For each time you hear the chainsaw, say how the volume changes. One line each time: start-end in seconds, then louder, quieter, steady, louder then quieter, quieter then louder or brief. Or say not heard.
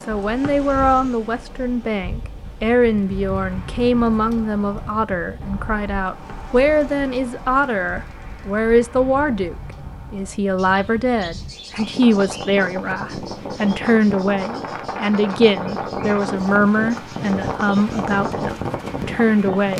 not heard.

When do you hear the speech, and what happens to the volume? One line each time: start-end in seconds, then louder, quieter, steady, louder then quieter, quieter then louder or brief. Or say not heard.
0.1-19.7 steady.